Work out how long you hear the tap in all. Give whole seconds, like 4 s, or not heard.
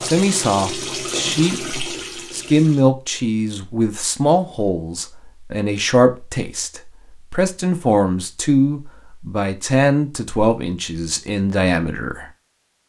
3 s.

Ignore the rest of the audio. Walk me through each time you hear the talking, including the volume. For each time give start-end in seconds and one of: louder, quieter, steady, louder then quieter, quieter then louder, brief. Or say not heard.
0.0-12.2 steady.